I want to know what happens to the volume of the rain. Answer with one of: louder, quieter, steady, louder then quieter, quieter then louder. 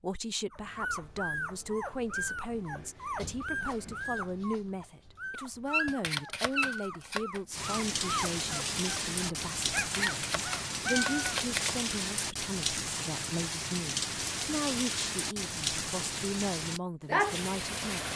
steady.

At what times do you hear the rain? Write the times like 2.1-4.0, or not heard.
7.5-18.1.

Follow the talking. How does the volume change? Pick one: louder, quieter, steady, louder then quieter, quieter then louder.
steady.